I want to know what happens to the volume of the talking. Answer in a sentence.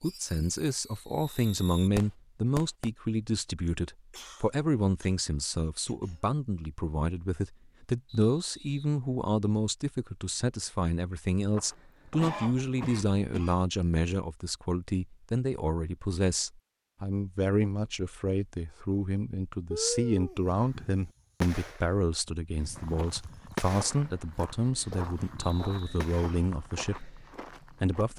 The volume of the talking stays about the same.